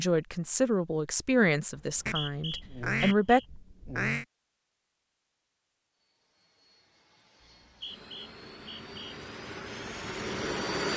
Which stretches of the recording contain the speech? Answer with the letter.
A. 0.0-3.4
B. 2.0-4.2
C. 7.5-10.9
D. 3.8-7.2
A.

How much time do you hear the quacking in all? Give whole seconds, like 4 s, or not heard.
2 s.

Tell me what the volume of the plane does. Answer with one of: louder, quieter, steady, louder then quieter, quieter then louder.
louder.